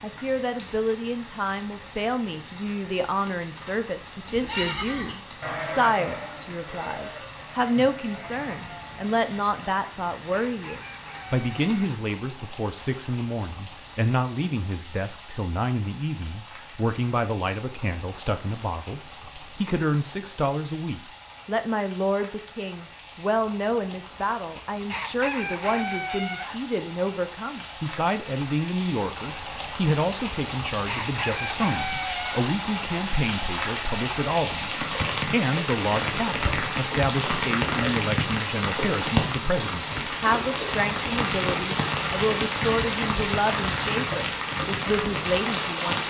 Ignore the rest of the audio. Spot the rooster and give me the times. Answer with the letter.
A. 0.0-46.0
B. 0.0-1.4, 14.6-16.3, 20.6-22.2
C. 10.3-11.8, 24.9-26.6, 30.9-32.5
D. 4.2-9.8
C.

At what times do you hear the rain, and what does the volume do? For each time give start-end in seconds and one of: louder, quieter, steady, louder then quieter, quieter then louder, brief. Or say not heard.
0.0-46.0 louder.